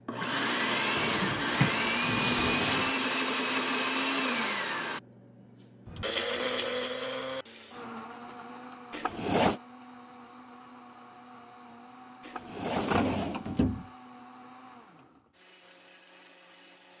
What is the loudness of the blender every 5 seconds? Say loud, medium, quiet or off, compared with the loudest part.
loud, medium, quiet, quiet.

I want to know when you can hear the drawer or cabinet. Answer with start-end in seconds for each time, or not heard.
0.9-3.0, 8.9-9.6, 12.2-13.8.